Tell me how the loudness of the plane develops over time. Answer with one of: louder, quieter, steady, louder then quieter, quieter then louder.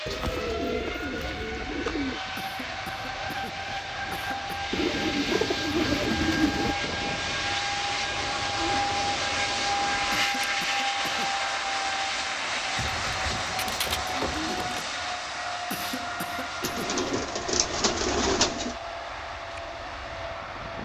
louder then quieter.